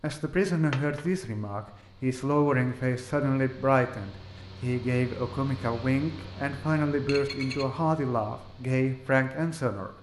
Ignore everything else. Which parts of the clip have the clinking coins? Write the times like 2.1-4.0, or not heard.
0.7-1.1, 7.0-7.7.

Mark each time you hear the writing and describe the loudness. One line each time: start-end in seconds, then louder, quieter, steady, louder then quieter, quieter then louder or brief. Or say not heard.
not heard.